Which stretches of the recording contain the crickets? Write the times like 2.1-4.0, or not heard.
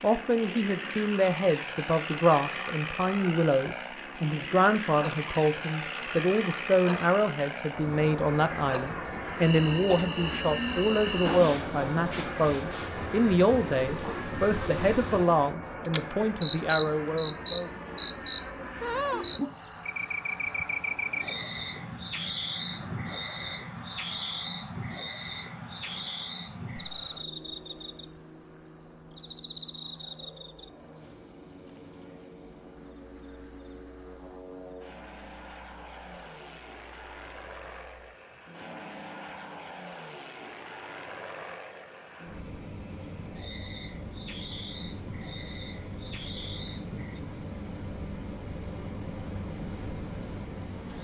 0.0-51.0.